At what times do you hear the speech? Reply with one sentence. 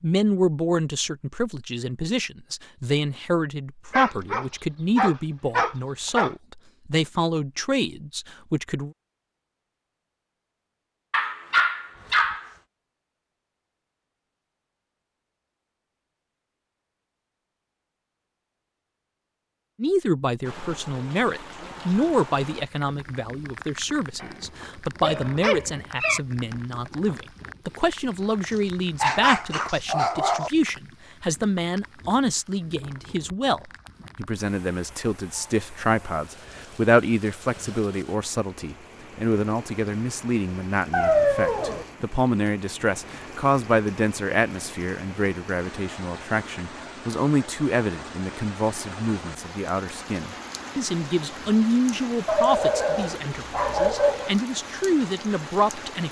You can hear the speech from 0.0 to 8.9 s and from 19.8 to 56.0 s.